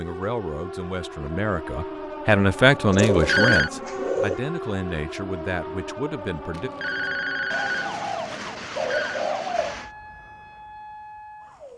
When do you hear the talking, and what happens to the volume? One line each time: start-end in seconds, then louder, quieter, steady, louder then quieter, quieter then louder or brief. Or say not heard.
0.0-6.7 louder then quieter.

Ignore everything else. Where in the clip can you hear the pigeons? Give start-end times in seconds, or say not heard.
2.9-4.4, 7.5-9.9.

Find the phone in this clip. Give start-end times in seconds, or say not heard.
3.0-3.7, 6.5-9.2.